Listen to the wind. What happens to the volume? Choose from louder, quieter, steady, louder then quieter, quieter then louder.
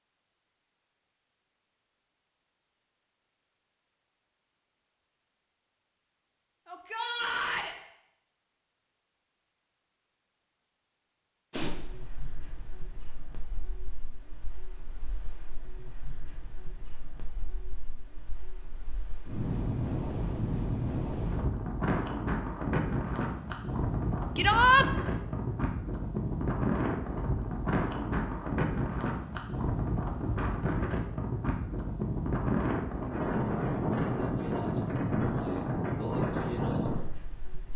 louder.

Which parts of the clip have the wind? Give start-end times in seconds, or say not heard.
11.5-37.7.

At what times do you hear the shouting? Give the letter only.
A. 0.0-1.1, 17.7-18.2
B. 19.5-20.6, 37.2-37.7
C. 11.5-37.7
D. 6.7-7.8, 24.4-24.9
D.